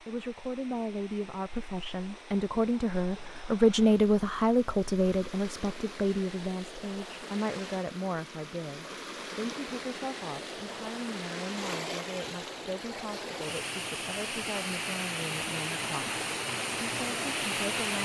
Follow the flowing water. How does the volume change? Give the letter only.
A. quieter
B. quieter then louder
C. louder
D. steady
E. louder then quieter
C.